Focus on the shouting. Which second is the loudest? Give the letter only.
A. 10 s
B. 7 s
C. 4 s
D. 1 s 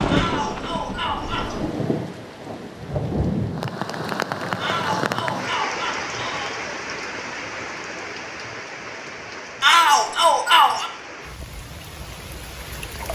A.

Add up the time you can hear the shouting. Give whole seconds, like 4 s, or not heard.
5 s.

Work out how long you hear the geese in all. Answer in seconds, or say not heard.
not heard.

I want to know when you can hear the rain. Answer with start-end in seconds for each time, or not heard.
0.0-13.1.